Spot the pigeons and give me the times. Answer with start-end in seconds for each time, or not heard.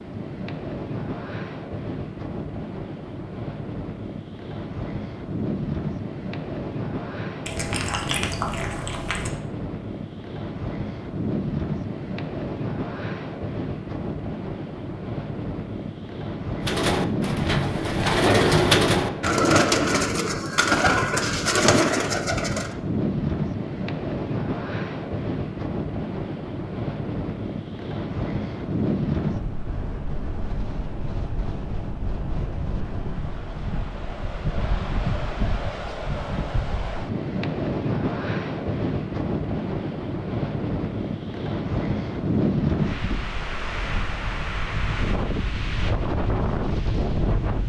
16.6-22.8.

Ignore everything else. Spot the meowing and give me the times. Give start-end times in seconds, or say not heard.
7.5-9.3.